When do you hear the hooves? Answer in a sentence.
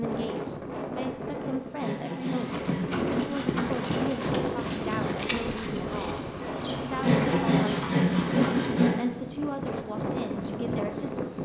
You can hear the hooves from 2.1 to 8.8 s.